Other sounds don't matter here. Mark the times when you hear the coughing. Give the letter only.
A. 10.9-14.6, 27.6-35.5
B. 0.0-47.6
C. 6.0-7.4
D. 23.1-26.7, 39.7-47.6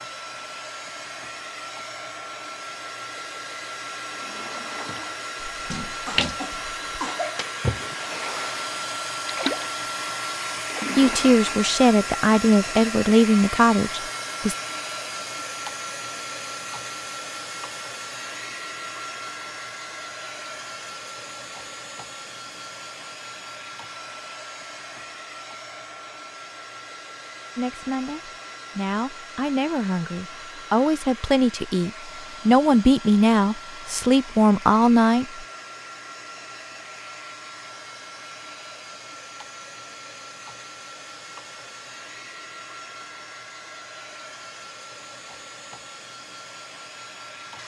C.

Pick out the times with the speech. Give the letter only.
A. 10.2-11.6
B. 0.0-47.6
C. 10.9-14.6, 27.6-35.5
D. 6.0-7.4
C.